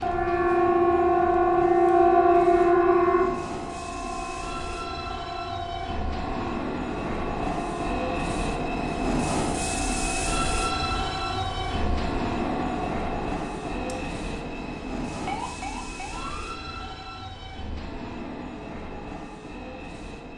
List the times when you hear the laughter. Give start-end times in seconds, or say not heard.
not heard.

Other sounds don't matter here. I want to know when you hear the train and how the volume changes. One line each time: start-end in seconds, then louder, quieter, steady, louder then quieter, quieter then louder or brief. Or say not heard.
0.0-20.3 louder then quieter.